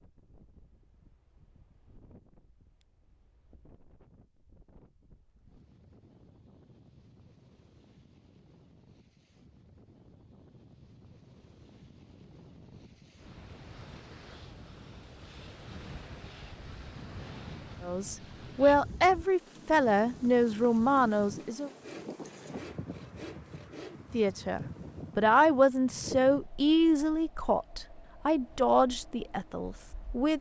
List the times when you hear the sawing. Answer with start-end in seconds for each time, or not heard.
21.4-24.1.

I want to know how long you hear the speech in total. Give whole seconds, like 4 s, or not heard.
10 s.